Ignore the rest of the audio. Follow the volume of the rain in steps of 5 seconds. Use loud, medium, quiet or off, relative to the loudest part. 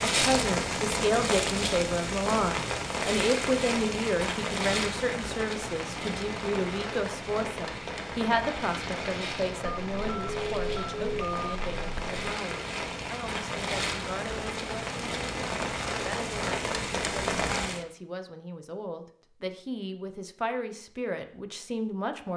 loud, medium, medium, loud, off.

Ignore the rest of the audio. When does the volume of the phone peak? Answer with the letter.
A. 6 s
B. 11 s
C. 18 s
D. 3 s
B.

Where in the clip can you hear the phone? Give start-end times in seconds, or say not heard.
9.7-12.2.